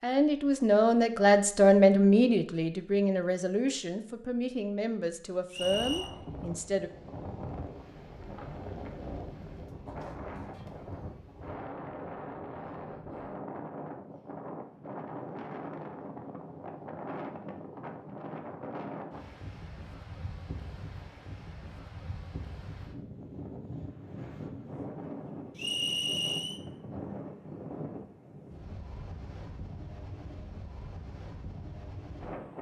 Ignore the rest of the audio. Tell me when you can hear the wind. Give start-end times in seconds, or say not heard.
5.5-32.5.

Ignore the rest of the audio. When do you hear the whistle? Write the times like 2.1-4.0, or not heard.
5.5-6.1, 25.6-26.6.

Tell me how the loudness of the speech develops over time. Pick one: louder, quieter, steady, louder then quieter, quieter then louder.
quieter.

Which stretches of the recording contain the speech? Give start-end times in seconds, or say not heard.
0.0-6.9.